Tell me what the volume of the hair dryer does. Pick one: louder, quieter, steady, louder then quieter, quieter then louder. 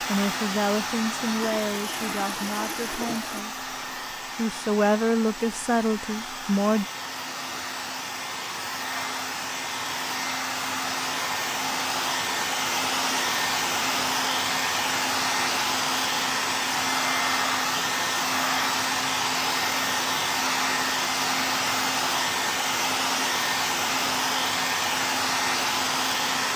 louder.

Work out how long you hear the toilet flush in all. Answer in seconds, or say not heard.
2 s.